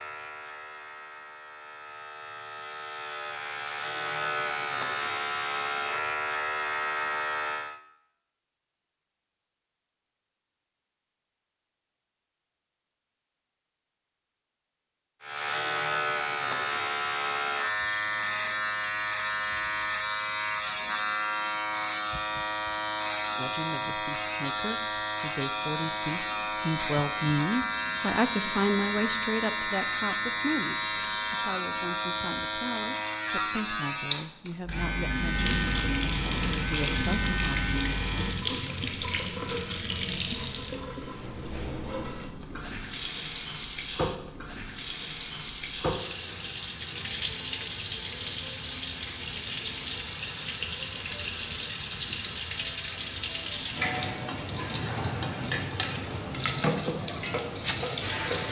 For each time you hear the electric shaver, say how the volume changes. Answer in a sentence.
You can hear the electric shaver from 0.0 to 7.8 s, getting louder; and from 15.2 to 38.5 s, at a steady volume.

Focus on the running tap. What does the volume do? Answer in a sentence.
The volume of the running tap stays about the same.